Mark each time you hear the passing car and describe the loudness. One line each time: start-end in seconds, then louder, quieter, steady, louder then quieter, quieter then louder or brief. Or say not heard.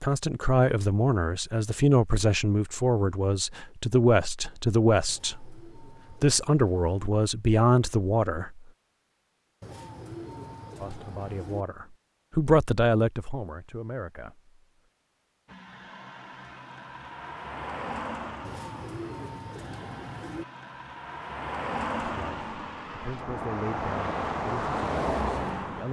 15.4-25.8 louder.